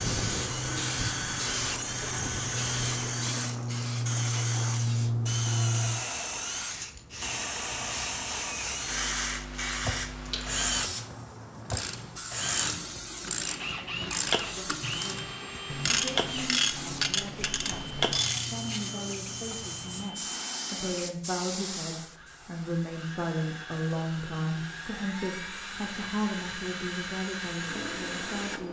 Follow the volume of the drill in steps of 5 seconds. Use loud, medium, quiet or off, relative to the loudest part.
loud, loud, loud, medium, medium, loud.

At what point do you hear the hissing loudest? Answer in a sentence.
The loudest moment of the hissing is at 5 seconds.